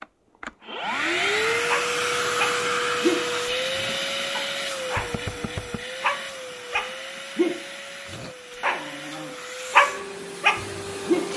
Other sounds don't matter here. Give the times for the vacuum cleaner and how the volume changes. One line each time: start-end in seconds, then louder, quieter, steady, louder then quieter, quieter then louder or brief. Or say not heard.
0.0-11.3 quieter.